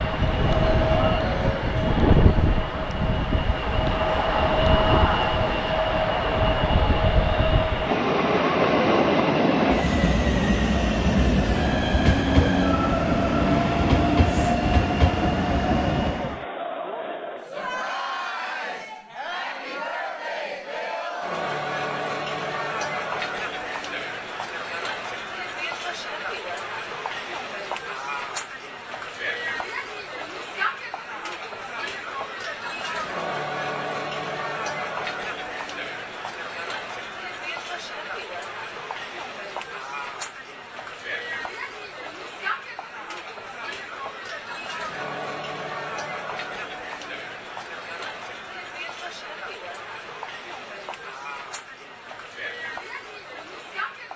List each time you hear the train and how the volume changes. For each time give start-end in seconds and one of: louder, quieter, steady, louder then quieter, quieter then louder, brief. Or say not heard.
0.0-16.4 steady.